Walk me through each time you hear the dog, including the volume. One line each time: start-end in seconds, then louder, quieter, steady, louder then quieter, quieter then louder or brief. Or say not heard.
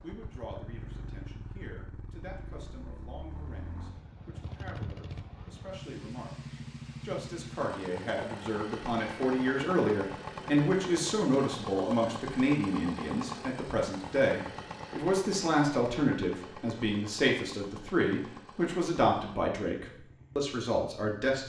not heard.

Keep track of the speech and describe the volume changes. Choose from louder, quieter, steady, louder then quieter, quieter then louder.
louder.